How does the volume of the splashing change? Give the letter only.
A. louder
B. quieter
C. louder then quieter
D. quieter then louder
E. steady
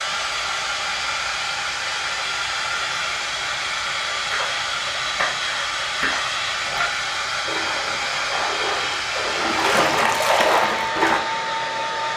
D.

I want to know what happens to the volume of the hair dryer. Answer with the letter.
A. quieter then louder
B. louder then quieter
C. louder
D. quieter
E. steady
E.